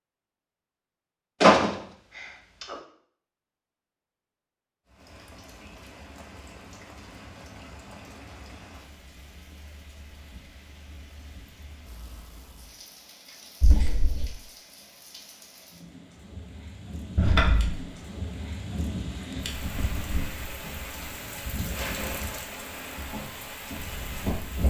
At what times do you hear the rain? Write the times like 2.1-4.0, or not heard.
4.8-24.6.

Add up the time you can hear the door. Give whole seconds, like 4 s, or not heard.
3 s.